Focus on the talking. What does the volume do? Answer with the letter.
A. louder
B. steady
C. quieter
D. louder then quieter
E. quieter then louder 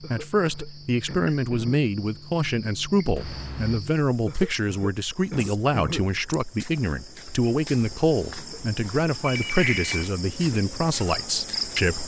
B.